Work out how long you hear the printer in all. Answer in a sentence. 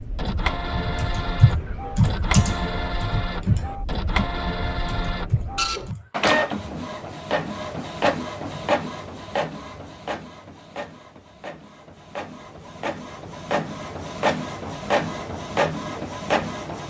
You can hear the printer for 17 seconds altogether.